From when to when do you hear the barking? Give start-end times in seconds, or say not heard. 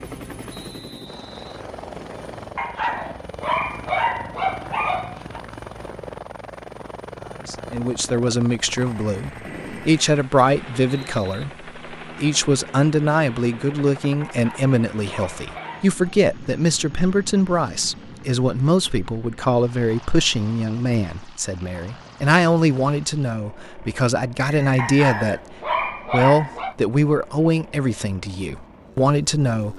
2.5-5.4, 14.2-16.1, 24.8-26.8.